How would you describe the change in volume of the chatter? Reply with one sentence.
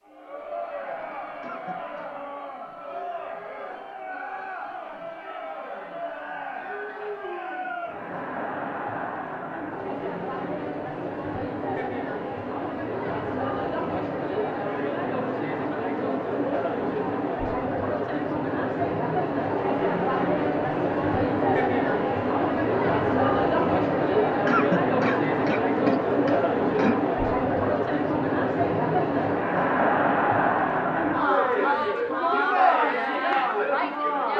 The loudness of the chatter goes up.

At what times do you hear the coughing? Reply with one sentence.
The coughing can be heard from 1.4 to 2.1 s and from 24.4 to 26.9 s.